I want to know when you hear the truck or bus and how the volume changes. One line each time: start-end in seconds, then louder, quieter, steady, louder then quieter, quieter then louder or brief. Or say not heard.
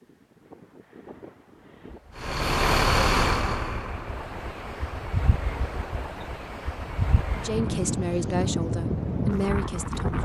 2.1-8.0 quieter.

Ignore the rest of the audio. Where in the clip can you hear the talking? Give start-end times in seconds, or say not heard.
7.3-10.2.